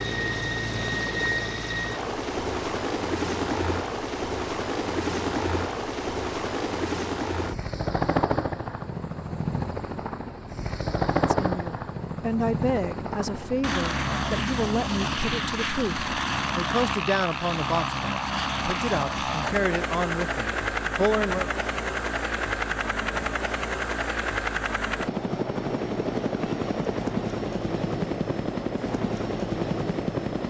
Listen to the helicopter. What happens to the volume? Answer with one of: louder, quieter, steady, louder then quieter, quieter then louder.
steady.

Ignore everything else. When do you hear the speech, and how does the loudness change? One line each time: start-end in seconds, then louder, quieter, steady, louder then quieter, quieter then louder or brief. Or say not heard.
11.2-21.5 steady.